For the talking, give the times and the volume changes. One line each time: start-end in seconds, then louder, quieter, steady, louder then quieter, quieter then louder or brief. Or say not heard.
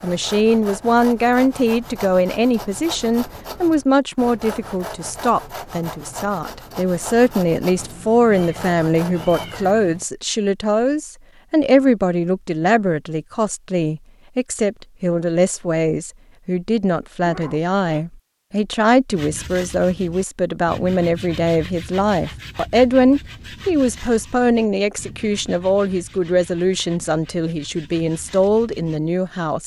0.0-29.6 steady.